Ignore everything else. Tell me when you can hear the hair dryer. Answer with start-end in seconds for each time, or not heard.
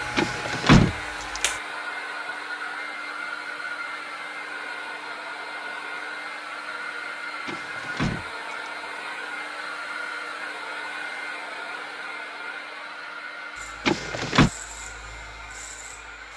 0.0-16.3.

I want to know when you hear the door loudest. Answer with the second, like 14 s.
1 s.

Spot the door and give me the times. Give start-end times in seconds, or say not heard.
0.1-1.4, 7.5-8.2, 13.8-14.5.